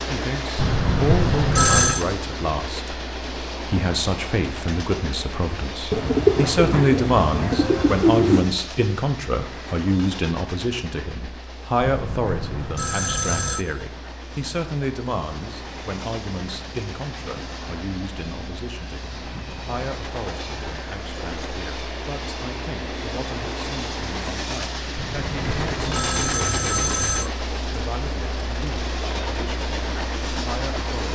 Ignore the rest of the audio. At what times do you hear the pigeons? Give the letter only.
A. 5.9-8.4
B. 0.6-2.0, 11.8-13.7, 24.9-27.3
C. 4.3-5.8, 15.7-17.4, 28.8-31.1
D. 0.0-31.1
A.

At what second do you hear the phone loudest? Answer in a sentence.
The volume of the phone peaks at 2 seconds.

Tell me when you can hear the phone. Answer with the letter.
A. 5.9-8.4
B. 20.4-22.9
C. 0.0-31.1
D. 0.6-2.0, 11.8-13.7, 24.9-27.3
D.